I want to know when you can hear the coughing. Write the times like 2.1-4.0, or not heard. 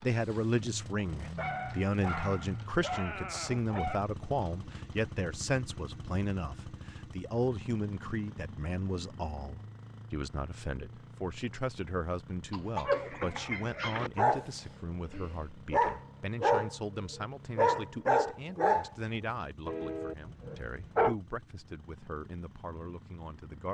12.5-13.2.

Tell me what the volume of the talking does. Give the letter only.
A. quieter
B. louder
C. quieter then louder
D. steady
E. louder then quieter
A.